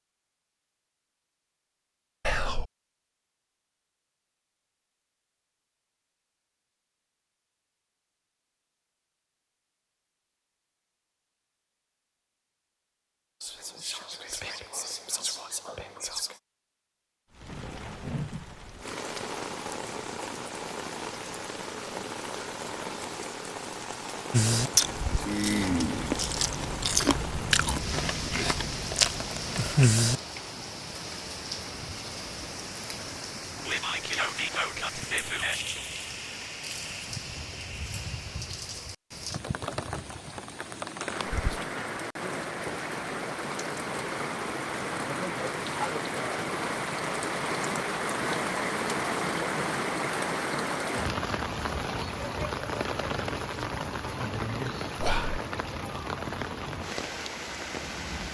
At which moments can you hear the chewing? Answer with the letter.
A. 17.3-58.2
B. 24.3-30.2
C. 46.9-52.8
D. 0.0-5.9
B.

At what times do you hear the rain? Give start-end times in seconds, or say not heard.
17.3-58.2.